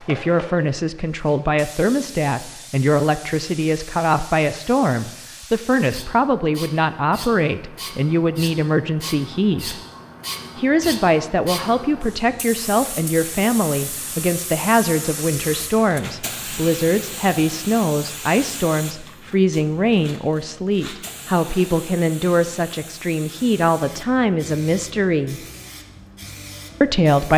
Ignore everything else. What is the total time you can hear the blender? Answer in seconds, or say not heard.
not heard.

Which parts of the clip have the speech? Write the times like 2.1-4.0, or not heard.
0.1-9.8, 10.6-25.4, 26.8-27.3.